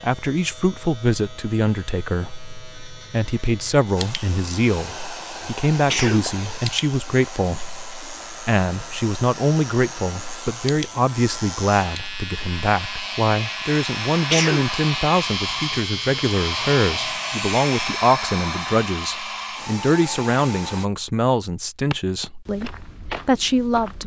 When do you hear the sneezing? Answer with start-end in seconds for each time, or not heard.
5.7-6.3, 14.2-14.7.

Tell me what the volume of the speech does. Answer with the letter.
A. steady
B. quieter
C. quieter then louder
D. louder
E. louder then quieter
A.